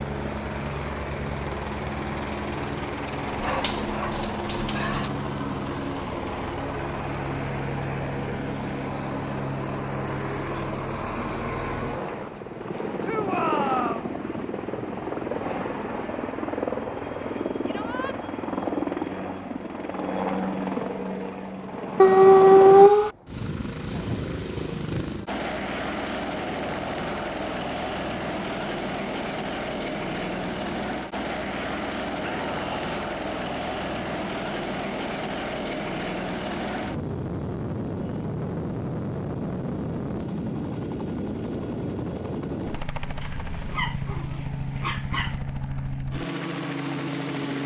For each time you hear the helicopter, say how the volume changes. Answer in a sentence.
You can hear the helicopter from 0.0 to 47.6 s, at a steady volume.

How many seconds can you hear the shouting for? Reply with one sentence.
The shouting can be heard for 2 seconds in total.